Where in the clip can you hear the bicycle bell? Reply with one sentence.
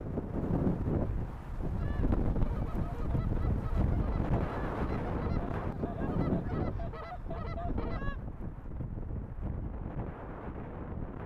You can't hear the bicycle bell here.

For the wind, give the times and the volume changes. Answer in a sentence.
The wind can be heard from 0.0 to 11.2 s, getting quieter.